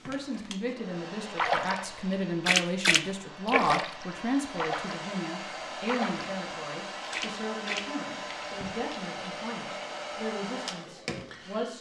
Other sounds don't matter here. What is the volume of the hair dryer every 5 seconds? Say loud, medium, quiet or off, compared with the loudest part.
medium, loud, loud.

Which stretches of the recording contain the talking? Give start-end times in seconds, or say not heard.
0.0-11.7.